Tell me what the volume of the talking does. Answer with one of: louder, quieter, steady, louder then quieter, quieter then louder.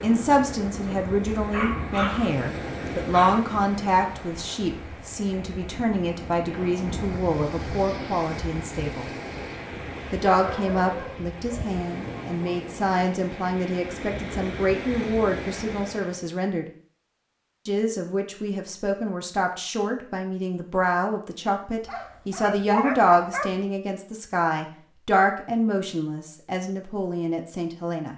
steady.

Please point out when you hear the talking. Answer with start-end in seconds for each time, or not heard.
0.0-9.1, 10.1-16.6, 17.6-28.1.